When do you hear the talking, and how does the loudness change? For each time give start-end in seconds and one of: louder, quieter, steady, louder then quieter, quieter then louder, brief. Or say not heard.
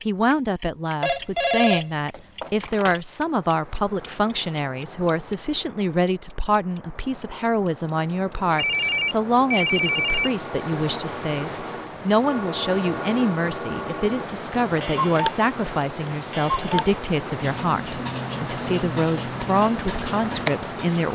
0.1-21.1 steady.